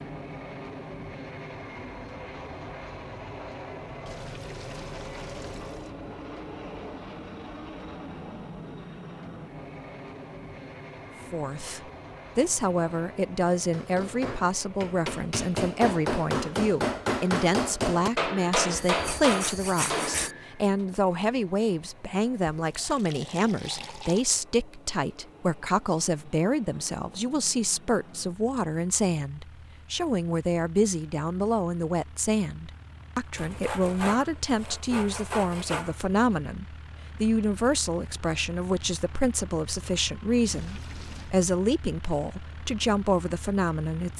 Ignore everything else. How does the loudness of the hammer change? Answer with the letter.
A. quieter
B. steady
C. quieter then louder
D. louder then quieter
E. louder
E.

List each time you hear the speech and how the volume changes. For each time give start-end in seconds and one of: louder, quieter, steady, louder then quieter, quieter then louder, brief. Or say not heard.
11.3-44.1 steady.